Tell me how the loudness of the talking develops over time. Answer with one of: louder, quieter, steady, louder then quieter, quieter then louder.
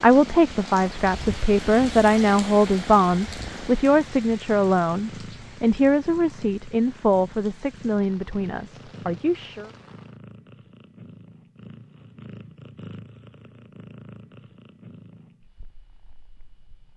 quieter.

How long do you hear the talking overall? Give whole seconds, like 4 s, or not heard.
10 s.